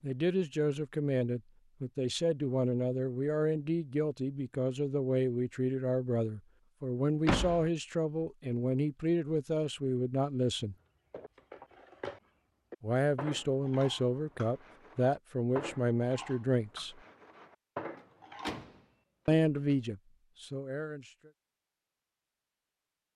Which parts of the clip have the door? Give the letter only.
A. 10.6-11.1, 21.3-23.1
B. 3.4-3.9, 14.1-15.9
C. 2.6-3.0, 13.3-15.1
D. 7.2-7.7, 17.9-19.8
D.